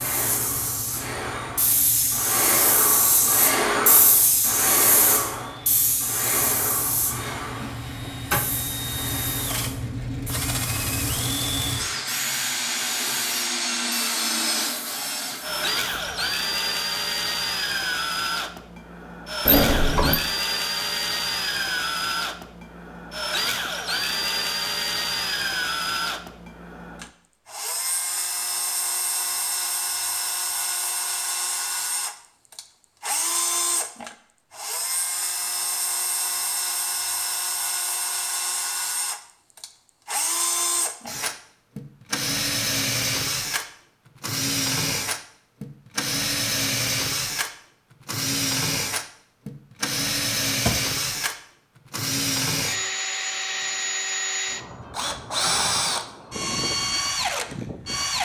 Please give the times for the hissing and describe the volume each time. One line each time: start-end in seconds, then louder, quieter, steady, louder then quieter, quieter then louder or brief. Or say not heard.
0.0-16.2 quieter.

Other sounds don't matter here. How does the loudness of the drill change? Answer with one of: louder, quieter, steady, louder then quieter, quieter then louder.
louder.